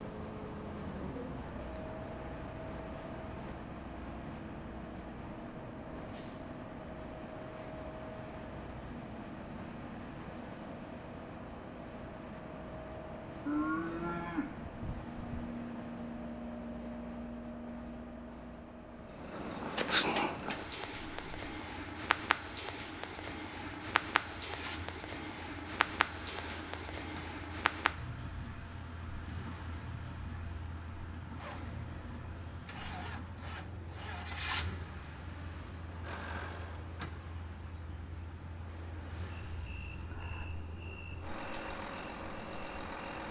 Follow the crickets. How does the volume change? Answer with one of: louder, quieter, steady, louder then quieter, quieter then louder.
quieter.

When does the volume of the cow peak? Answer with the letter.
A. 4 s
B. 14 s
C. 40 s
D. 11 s
B.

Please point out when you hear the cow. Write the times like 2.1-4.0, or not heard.
13.4-15.4.